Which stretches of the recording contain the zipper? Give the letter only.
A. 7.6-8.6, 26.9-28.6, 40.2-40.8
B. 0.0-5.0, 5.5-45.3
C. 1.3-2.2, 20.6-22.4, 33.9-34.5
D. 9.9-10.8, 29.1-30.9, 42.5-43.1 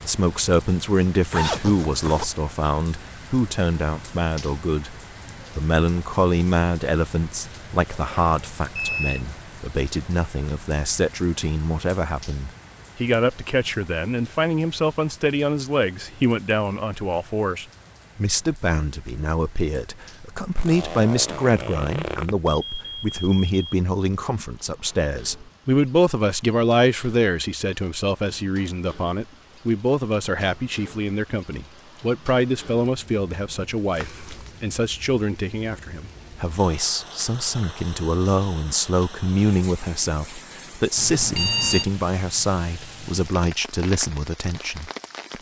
C.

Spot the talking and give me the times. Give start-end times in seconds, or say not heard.
0.0-5.0, 5.5-45.3.